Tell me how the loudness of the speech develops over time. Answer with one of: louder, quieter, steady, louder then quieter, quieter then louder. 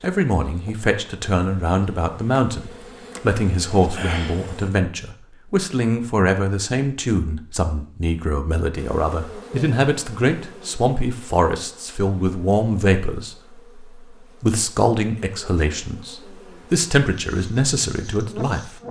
steady.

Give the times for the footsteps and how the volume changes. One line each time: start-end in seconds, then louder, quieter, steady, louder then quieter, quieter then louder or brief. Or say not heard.
not heard.